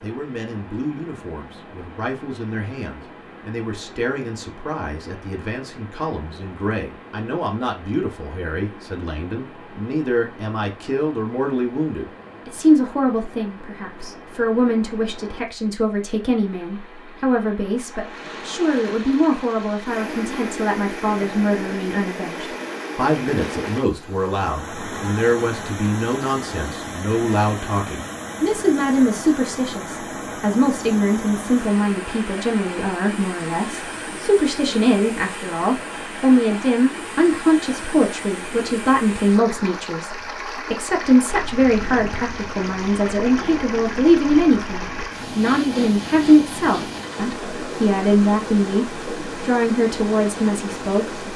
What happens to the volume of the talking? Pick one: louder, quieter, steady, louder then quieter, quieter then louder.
louder.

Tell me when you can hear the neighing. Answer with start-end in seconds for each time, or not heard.
not heard.